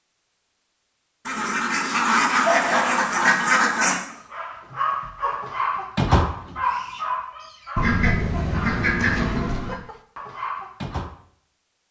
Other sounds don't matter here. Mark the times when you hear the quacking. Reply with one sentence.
The quacking can be heard from 1.2 to 4.0 s and from 7.8 to 9.8 s.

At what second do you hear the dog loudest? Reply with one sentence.
The volume of the dog peaks at 6 seconds.